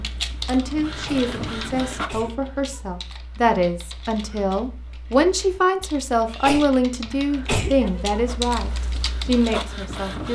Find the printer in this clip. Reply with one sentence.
You can hear the printer from 0.0 to 2.3 s and from 8.2 to 10.3 s.